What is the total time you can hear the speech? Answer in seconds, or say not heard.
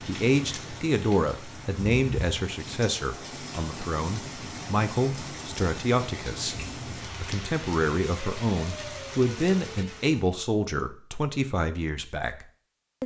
13 s.